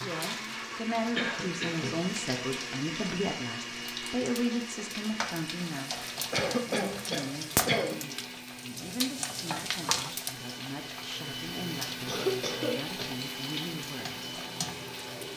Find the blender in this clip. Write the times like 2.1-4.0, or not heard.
0.0-15.3.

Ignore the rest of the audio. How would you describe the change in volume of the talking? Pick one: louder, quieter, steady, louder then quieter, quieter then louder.
quieter.